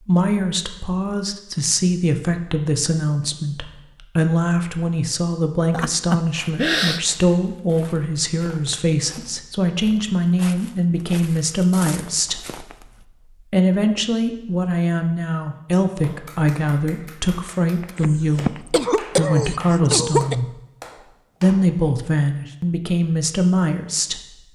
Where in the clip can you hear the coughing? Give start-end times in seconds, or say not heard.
5.7-7.0, 17.9-20.4.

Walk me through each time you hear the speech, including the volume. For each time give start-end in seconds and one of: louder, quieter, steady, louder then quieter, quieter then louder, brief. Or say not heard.
0.0-12.6 steady
13.4-20.6 steady
21.4-24.2 brief.